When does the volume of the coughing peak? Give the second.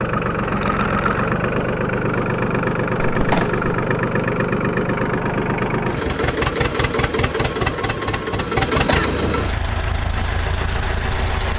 3 s.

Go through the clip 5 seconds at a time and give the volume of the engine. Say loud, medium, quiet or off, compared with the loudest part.
loud, loud, medium.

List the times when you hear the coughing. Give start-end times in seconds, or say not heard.
3.0-3.9, 8.7-9.2.